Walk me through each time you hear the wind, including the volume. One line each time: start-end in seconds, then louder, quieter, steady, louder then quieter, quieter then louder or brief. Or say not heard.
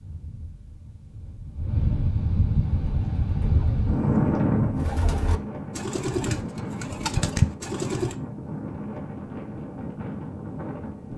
0.0-11.1 louder then quieter.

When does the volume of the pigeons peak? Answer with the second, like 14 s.
7 s.